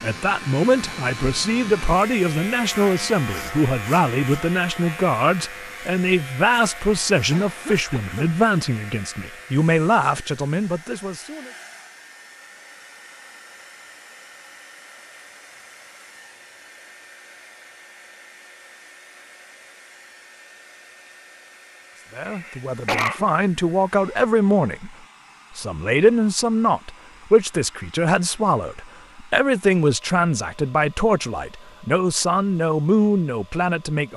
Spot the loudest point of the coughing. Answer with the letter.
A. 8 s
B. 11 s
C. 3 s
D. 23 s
D.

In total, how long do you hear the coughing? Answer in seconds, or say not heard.
2 s.